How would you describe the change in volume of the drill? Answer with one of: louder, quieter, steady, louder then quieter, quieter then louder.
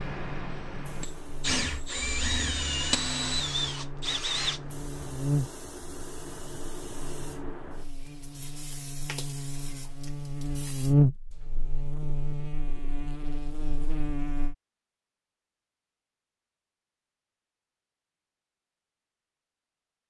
louder.